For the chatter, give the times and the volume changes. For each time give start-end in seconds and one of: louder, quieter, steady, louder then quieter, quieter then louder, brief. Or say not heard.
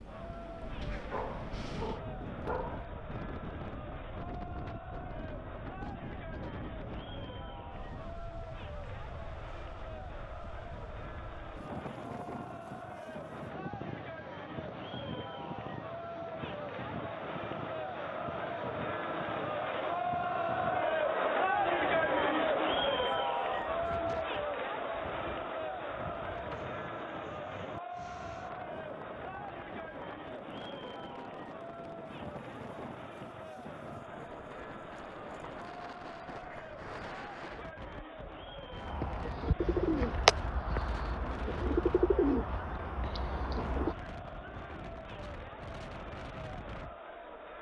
0.0-47.5 louder then quieter.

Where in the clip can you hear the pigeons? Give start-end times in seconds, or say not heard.
38.9-44.0.